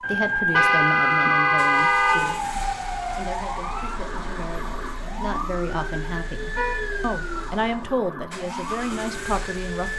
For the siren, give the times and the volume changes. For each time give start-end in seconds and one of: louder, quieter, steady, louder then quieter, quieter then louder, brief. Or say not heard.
0.0-9.9 quieter.